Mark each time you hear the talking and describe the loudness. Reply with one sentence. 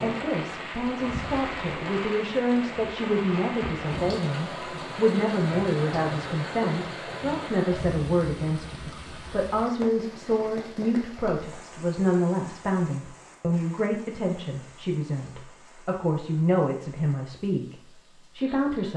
The talking can be heard from 0.0 to 18.9 s, at a steady volume.